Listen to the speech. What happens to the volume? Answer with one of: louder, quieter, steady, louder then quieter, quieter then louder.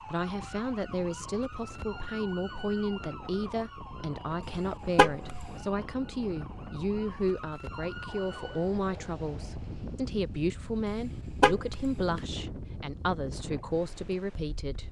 steady.